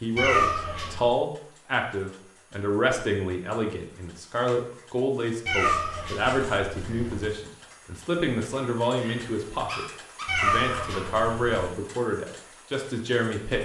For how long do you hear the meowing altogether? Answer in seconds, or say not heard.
4 s.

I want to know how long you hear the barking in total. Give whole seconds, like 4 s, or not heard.
2 s.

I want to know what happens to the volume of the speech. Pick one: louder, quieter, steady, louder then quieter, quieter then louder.
steady.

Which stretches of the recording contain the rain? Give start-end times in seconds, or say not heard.
not heard.